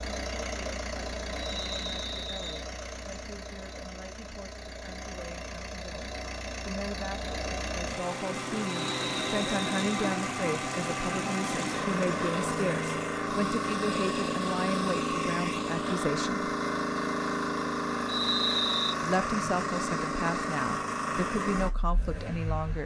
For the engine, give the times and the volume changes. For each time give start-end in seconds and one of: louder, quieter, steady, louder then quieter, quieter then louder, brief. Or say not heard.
0.0-22.8 louder.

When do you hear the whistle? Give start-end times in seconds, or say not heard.
1.4-2.6, 8.7-9.9, 18.1-18.9.